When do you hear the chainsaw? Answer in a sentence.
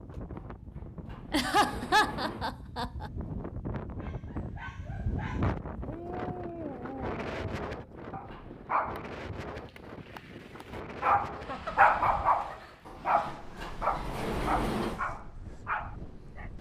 The chainsaw can't be heard in this clip.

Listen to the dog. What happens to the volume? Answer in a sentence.
The volume of the dog goes up, then down.